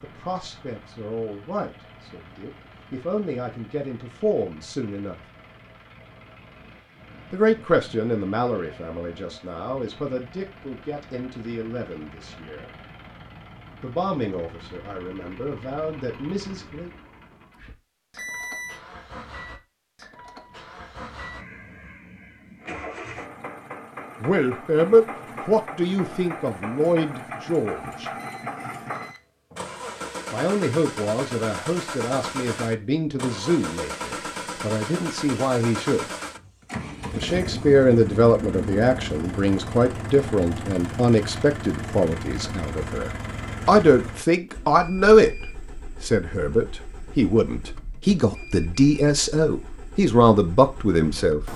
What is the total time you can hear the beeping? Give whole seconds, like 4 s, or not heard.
2 s.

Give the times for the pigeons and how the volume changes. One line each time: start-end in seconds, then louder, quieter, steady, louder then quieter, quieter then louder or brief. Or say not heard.
not heard.